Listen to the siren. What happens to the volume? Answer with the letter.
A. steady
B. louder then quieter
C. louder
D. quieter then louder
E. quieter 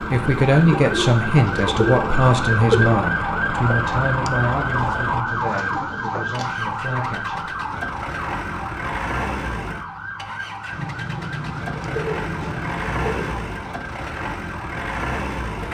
E.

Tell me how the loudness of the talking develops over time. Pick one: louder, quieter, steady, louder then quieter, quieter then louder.
quieter.